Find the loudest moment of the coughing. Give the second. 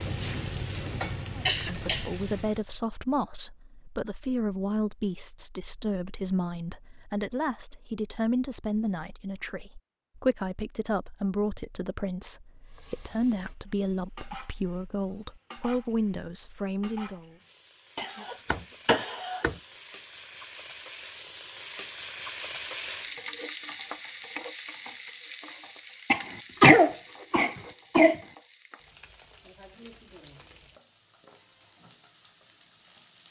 27 s.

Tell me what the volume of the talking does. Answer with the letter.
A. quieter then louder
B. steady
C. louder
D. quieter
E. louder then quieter
B.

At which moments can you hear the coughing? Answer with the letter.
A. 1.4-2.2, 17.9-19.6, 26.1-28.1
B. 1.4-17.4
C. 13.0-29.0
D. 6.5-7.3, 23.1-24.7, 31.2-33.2
A.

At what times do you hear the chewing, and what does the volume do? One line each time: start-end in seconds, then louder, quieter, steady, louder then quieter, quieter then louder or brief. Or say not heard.
not heard.